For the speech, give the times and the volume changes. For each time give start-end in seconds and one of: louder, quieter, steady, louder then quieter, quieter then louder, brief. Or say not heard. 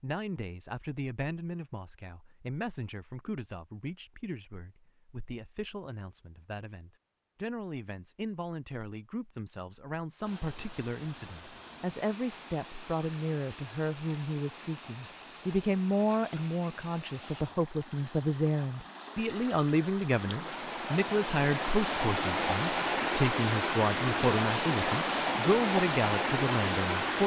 0.0-27.2 louder.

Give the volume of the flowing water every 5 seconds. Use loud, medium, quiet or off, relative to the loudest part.
off, off, quiet, quiet, loud, loud.